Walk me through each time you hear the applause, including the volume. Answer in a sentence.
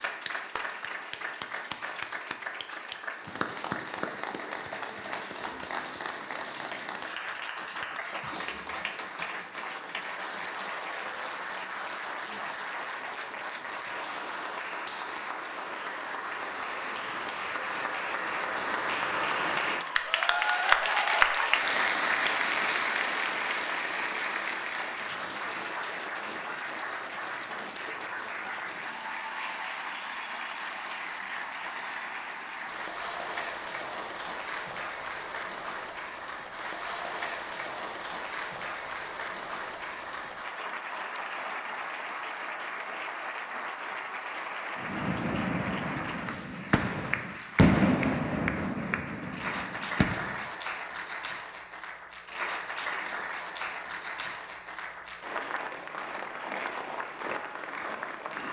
You can hear the applause from 0.0 to 58.4 s, getting louder then quieter.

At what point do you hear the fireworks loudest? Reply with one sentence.
The volume of the fireworks peaks at 48 seconds.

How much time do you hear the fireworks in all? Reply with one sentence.
You can hear the fireworks for 6 seconds altogether.